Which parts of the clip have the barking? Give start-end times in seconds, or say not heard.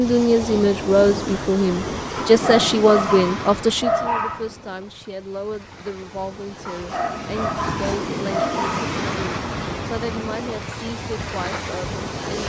2.1-4.5, 6.7-8.8.